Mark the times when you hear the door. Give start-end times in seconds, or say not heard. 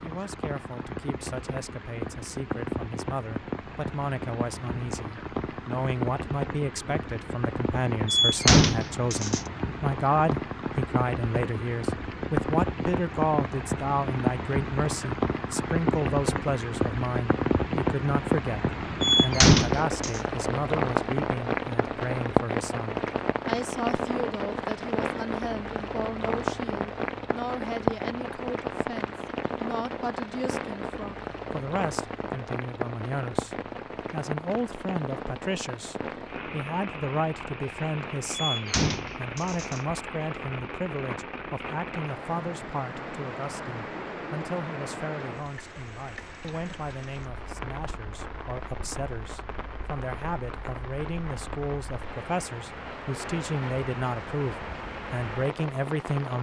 8.1-9.4, 19.0-20.2, 38.4-39.8.